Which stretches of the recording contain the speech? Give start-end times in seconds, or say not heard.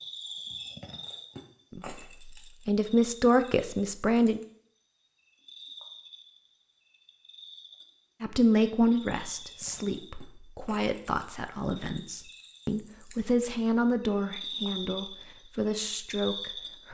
1.8-4.4, 8.2-16.9.